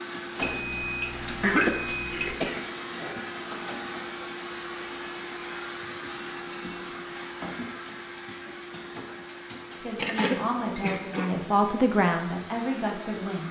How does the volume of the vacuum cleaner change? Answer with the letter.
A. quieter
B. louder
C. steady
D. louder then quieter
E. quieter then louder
A.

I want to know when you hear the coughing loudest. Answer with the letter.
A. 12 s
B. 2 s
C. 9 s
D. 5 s
B.